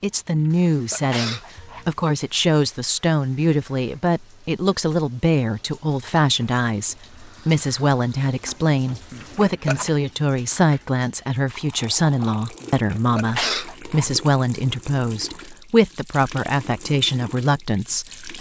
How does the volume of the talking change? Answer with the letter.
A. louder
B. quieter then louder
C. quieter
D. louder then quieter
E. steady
E.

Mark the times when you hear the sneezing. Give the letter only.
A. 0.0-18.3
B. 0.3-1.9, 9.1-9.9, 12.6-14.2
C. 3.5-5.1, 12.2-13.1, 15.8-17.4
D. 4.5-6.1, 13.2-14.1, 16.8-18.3
B.